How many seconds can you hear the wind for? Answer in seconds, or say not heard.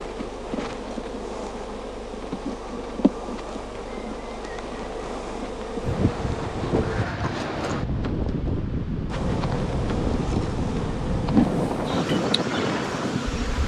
8 s.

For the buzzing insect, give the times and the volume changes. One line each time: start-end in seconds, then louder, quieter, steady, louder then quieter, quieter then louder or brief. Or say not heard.
0.0-7.0 steady
9.1-13.6 louder then quieter.